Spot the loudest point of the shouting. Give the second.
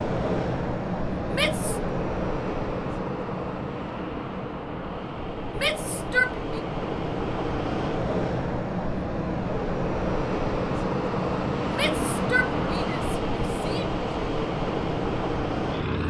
6 s.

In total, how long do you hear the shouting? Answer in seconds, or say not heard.
4 s.